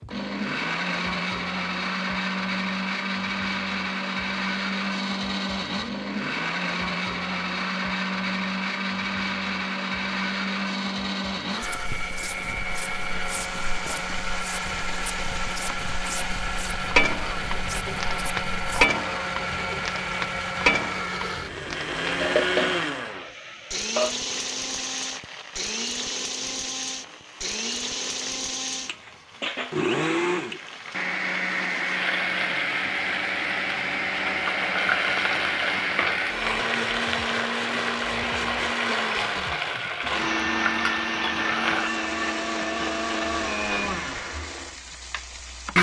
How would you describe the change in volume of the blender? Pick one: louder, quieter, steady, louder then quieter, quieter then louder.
steady.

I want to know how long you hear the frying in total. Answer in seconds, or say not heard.
32 s.